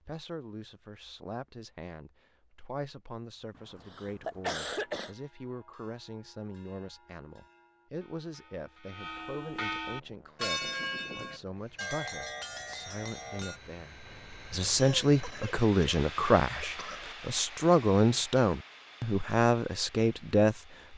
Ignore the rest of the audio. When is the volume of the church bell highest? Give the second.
11 s.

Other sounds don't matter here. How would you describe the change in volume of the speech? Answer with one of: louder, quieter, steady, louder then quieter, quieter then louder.
louder.